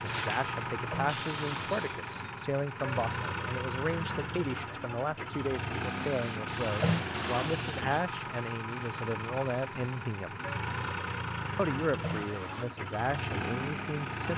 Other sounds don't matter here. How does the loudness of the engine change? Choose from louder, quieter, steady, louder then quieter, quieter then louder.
steady.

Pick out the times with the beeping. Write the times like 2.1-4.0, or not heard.
0.8-2.4, 6.8-7.6, 12.0-12.7.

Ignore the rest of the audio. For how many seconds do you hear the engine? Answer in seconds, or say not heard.
14 s.